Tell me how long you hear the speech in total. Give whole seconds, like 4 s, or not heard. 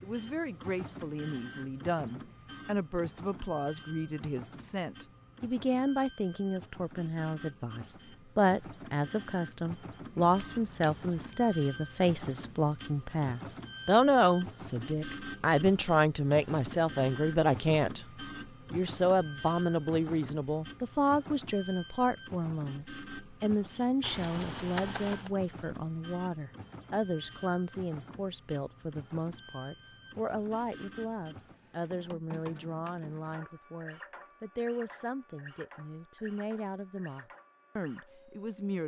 39 s.